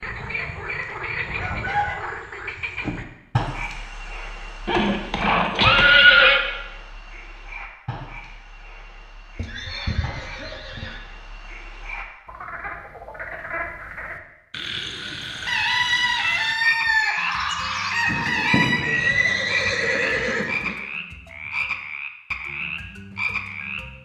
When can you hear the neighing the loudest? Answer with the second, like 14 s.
6 s.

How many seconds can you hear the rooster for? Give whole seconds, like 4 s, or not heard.
5 s.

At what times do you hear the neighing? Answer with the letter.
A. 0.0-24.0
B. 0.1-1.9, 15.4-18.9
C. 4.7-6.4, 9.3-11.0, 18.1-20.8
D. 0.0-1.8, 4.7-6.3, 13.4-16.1
C.